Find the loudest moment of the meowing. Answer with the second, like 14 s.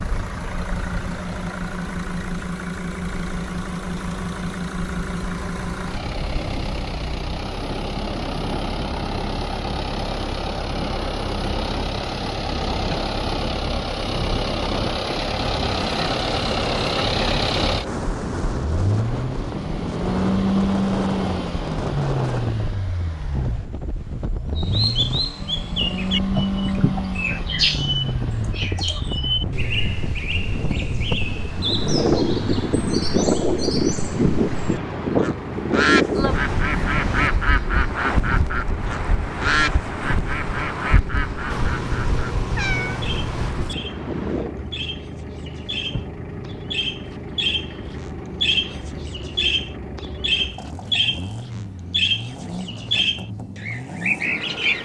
43 s.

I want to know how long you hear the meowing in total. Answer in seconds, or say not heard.
2 s.